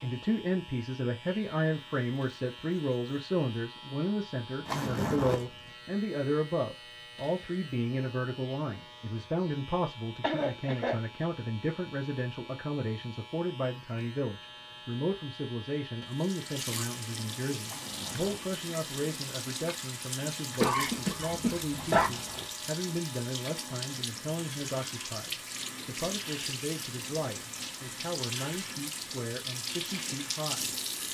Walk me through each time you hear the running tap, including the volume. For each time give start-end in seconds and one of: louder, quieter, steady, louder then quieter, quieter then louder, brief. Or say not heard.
16.1-31.0 steady.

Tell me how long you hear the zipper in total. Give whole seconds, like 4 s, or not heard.
3 s.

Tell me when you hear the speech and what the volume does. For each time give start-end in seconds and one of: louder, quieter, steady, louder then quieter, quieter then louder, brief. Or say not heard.
0.0-30.8 quieter.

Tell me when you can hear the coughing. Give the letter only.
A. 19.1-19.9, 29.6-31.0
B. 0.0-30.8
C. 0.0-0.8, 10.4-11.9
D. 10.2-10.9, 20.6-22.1
D.